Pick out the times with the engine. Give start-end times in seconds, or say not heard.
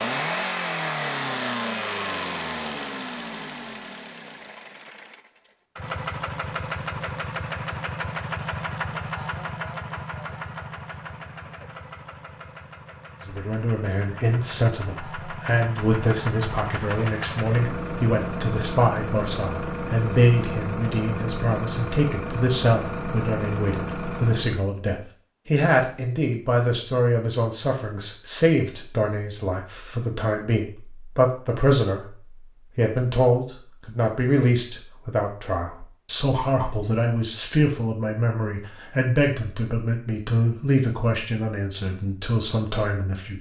0.0-24.7.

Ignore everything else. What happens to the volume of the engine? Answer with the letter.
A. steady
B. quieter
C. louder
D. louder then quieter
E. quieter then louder
E.